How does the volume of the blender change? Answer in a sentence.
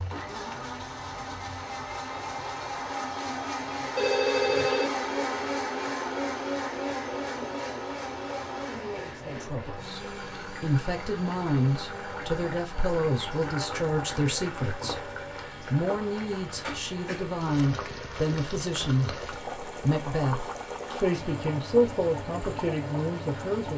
The loudness of the blender goes down.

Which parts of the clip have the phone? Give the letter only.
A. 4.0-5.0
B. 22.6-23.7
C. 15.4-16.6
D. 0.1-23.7
A.